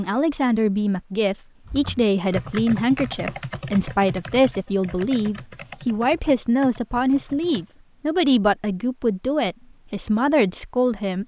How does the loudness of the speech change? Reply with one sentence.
The volume of the speech stays about the same.